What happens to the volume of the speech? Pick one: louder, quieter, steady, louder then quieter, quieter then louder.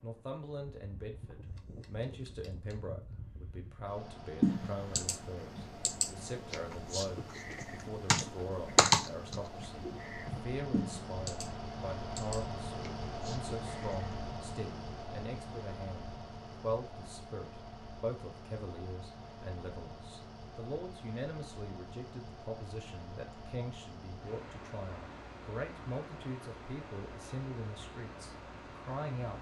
steady.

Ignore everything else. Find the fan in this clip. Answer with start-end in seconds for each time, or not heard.
0.0-29.3.